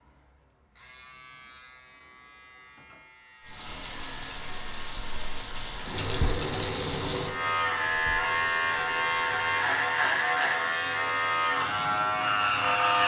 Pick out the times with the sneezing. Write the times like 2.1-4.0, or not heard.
not heard.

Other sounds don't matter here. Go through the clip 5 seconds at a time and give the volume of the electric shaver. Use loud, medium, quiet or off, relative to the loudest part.
quiet, loud, loud.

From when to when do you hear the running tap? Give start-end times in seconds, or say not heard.
3.4-13.0.